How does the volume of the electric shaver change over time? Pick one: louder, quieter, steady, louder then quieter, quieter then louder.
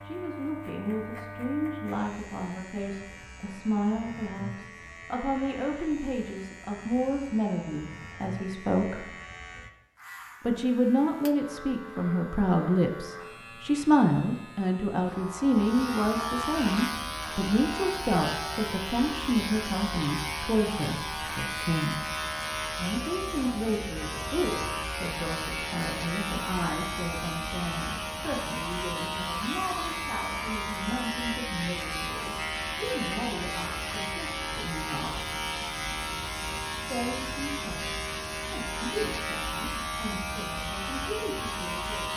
louder.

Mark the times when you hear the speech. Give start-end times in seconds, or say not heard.
0.0-9.1, 10.4-22.1, 22.8-35.2, 36.9-42.1.